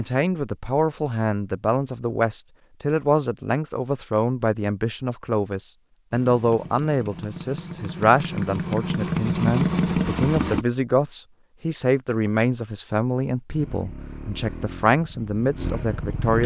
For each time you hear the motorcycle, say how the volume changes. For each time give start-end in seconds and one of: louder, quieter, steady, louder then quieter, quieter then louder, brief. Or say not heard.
6.1-10.7 louder
13.5-16.4 brief.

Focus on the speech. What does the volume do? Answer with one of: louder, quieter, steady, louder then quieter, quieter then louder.
steady.